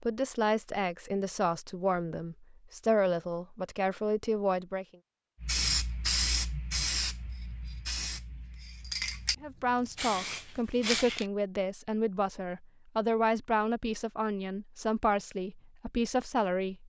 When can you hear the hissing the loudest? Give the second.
6 s.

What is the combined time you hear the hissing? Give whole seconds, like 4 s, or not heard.
6 s.